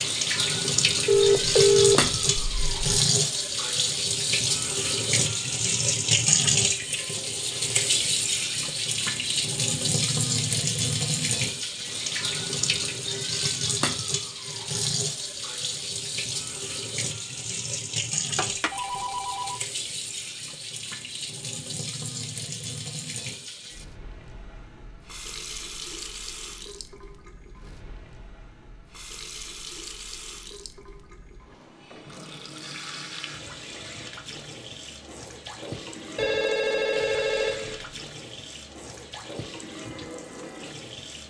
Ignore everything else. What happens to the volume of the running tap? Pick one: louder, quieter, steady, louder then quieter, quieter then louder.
quieter.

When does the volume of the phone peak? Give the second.
2 s.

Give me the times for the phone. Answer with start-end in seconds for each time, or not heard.
1.1-2.8, 18.4-19.6, 36.1-37.9.